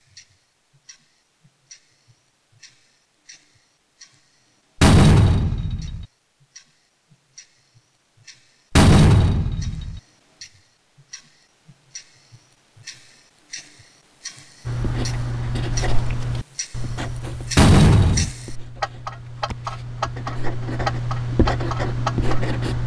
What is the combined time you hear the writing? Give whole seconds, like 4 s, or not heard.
8 s.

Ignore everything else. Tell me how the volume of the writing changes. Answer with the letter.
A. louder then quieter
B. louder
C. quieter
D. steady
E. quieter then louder
E.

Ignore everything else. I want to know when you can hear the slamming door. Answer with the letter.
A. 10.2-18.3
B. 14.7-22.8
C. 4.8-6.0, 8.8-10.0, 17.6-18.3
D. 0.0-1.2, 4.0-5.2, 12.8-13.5
C.